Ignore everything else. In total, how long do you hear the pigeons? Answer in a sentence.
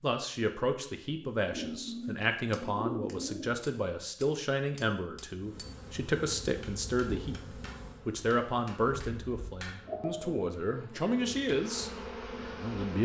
You can hear the pigeons for 4 seconds altogether.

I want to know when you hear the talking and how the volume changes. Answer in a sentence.
The talking can be heard from 0.0 to 11.9 s, at a steady volume; and briefly from 12.5 to 13.0 s.